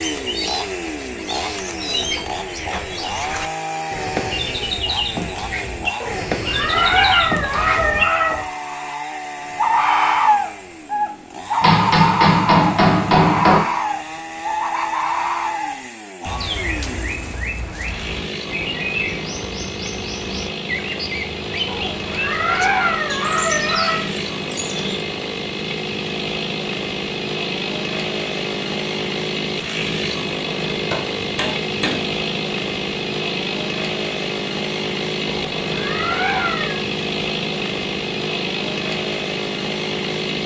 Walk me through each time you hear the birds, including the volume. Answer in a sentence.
You can hear the birds from 0.0 to 25.1 s, getting louder then quieter.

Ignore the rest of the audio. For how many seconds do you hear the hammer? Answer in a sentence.
You can hear the hammer for 3 seconds altogether.